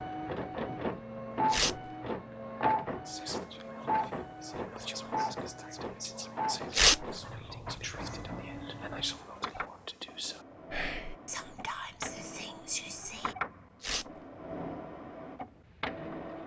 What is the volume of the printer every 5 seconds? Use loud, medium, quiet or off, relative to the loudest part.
loud, medium, medium, medium.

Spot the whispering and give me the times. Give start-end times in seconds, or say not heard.
3.0-13.3.